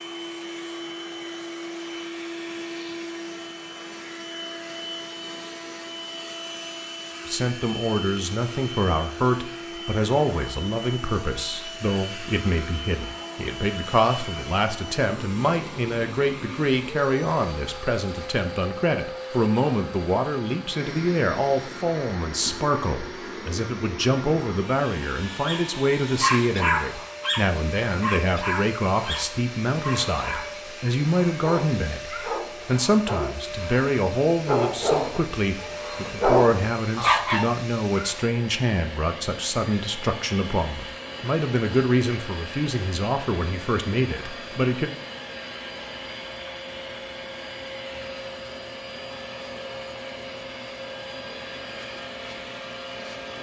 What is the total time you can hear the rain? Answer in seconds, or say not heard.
not heard.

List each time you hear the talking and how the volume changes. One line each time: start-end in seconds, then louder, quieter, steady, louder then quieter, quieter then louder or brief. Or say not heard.
7.2-44.9 steady.